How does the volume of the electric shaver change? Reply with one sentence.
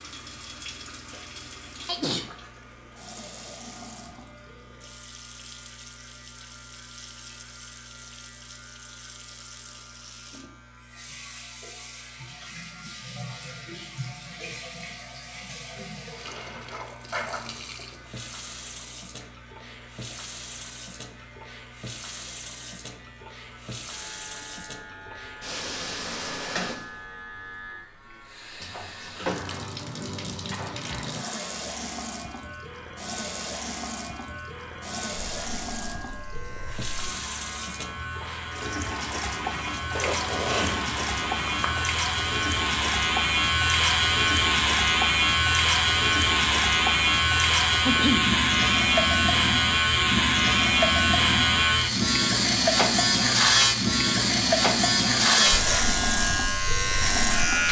The loudness of the electric shaver goes up.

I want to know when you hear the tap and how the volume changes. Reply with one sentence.
You can hear the tap from 0.0 to 57.6 s, getting louder.